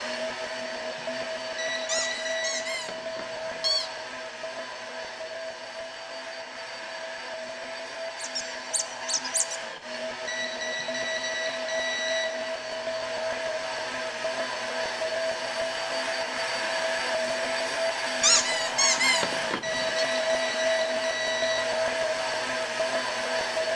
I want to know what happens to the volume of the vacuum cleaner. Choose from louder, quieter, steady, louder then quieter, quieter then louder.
louder.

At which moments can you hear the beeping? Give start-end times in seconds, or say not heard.
1.6-2.6, 10.2-12.2, 19.6-21.6.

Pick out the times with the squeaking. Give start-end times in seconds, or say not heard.
1.9-3.9, 8.2-9.6, 18.2-20.1.